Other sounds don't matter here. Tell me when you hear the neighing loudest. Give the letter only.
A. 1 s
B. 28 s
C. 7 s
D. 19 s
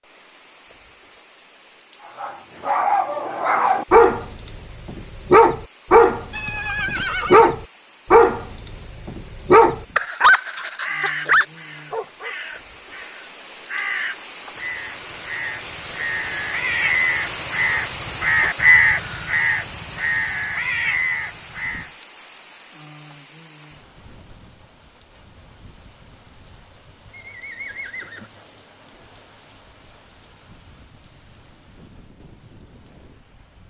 C.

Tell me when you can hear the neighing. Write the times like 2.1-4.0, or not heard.
6.3-7.5, 27.1-28.3.